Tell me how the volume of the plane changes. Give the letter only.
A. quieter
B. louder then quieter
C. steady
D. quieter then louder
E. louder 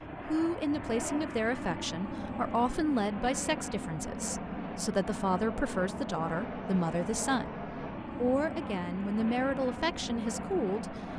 C.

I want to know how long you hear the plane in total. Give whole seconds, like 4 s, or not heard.
11 s.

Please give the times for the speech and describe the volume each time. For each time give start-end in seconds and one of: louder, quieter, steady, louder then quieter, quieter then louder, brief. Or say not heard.
0.2-11.1 steady.